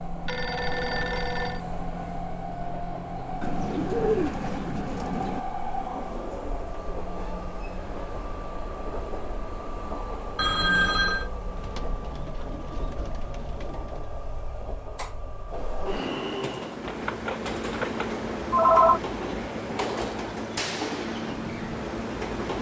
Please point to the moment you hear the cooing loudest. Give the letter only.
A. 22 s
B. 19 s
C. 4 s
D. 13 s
C.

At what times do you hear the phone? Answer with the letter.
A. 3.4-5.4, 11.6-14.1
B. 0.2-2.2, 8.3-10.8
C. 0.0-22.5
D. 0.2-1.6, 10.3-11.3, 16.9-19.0
D.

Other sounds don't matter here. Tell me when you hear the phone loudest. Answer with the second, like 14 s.
19 s.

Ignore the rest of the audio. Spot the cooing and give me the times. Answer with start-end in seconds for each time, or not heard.
3.4-5.4, 11.6-14.1.